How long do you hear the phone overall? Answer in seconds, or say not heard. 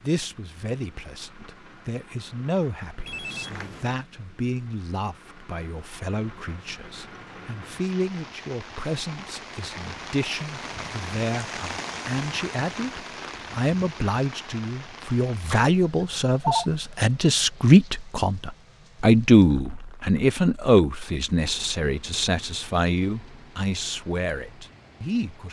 2 s.